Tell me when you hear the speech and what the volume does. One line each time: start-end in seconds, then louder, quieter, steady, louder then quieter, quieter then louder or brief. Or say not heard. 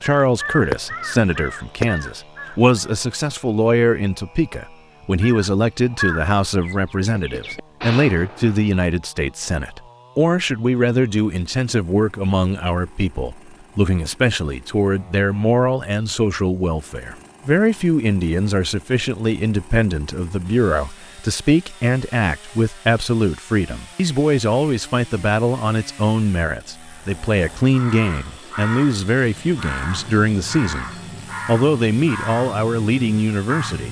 0.0-33.8 steady.